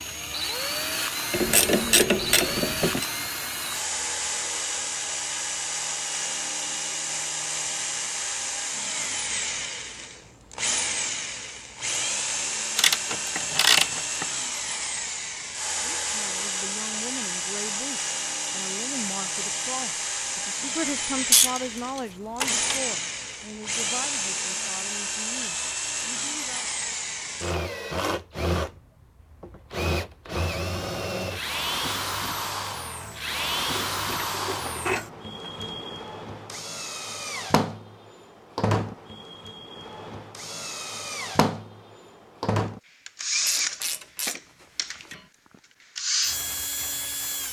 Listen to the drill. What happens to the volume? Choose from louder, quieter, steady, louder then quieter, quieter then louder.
steady.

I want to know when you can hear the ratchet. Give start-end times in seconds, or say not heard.
1.3-3.0, 12.8-14.2, 21.3-22.8, 33.7-35.8, 43.4-45.2.